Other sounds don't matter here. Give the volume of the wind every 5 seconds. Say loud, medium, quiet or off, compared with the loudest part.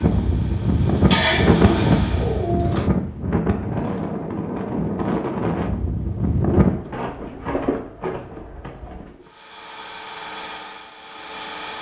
loud, loud, off.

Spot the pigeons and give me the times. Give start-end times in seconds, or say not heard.
1.1-2.9, 6.5-9.2.